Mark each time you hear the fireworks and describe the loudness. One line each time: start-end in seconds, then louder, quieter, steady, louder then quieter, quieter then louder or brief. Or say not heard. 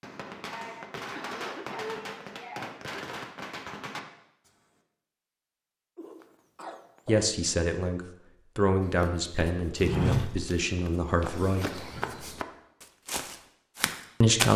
0.0-4.5 steady.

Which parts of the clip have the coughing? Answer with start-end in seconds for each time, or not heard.
0.5-3.0, 6.0-7.2, 11.7-12.2.